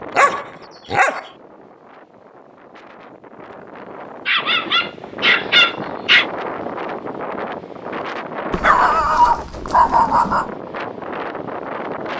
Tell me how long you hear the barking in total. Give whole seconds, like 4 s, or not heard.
5 s.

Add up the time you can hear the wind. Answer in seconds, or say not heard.
12 s.